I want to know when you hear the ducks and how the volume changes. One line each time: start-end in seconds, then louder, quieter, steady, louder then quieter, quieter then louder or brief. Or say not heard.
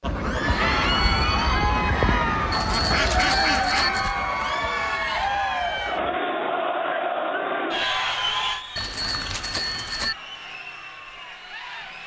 0.0-6.2 quieter.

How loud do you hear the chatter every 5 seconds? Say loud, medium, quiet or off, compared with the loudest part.
loud, loud, quiet.